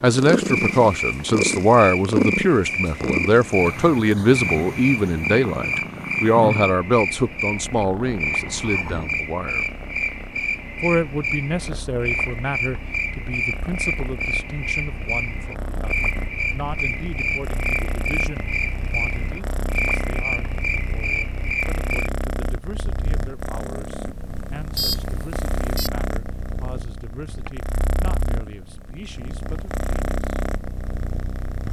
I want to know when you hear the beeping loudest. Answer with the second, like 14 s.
25 s.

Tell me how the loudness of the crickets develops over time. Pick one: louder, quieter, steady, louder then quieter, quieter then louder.
steady.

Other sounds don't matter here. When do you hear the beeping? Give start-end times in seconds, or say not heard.
8.0-9.2, 24.8-25.9.